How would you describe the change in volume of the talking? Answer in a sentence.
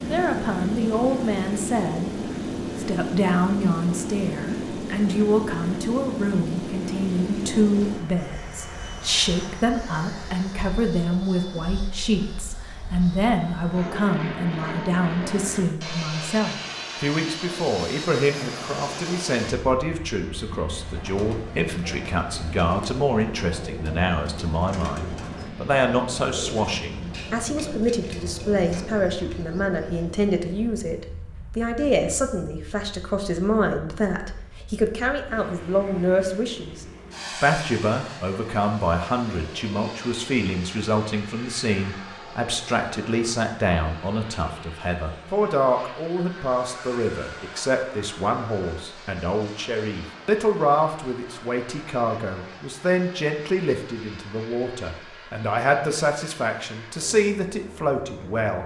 The volume of the talking stays about the same.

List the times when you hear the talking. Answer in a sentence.
The talking can be heard from 0.0 to 58.6 s.